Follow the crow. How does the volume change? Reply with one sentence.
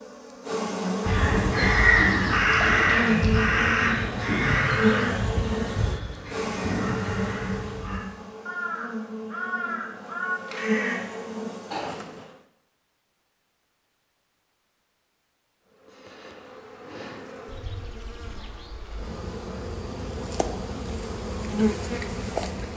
The volume of the crow goes down.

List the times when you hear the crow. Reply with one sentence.
The crow can be heard from 1.1 to 10.9 s.